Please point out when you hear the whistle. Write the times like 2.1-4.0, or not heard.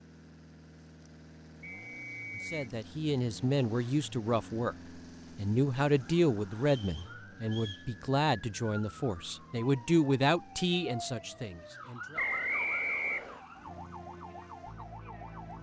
1.6-2.6, 6.7-7.8, 12.2-13.4.